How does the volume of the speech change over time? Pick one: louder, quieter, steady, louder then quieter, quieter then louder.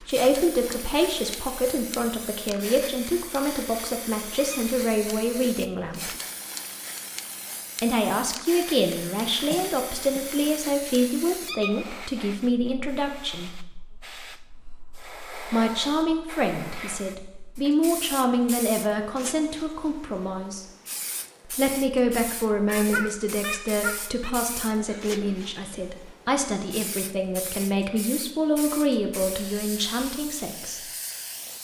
steady.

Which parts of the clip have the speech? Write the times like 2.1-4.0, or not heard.
0.0-6.2, 7.8-13.6, 15.5-20.6, 21.4-30.9.